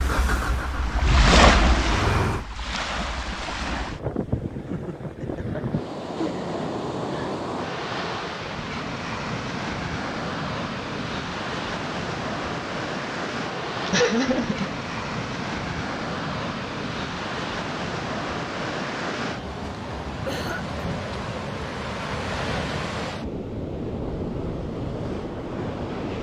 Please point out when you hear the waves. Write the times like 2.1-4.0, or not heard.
0.0-26.1.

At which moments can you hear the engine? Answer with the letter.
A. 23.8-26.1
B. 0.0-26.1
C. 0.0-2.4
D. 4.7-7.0
C.